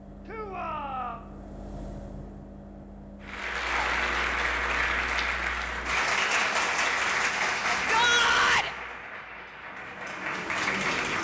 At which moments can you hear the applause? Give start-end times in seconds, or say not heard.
3.2-11.1.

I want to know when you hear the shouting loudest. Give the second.
8 s.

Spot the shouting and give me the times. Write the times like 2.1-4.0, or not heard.
0.2-1.2, 7.7-8.8.